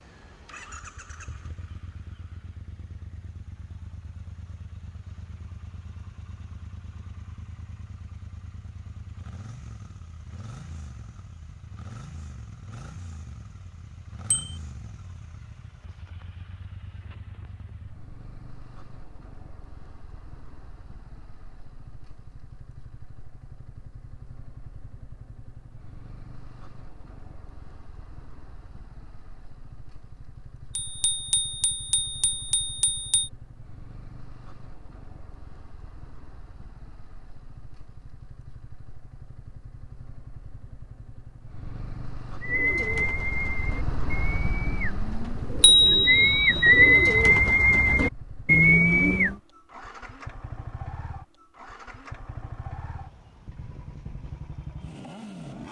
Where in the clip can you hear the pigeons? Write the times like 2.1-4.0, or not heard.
42.4-49.4.